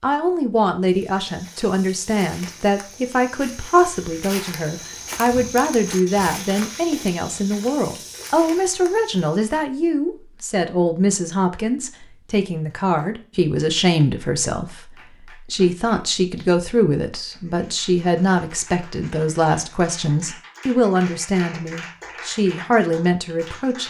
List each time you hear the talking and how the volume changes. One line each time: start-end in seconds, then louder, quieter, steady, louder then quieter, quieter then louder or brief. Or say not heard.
0.0-23.8 steady.